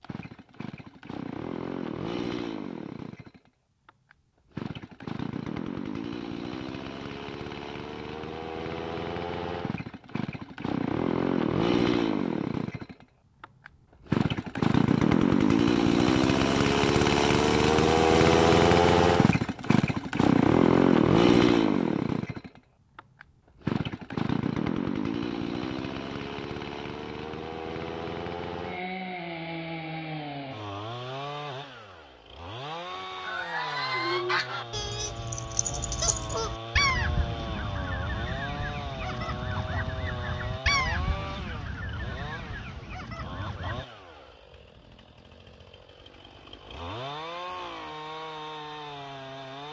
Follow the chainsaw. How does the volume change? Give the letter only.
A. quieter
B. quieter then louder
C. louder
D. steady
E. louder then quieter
E.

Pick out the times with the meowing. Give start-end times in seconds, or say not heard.
not heard.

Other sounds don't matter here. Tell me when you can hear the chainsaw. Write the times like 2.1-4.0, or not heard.
0.0-49.6.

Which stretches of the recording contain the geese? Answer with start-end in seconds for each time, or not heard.
33.0-43.9.